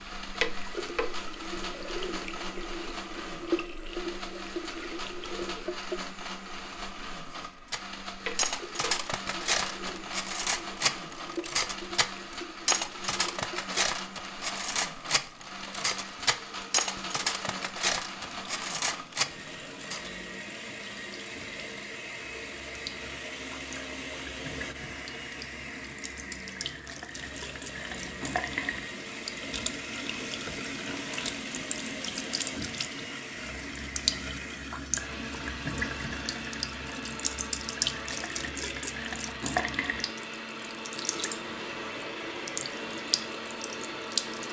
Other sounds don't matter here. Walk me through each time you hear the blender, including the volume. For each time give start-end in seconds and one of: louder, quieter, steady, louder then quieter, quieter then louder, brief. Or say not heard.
0.0-44.4 steady.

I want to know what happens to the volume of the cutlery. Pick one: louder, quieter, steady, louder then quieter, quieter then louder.
steady.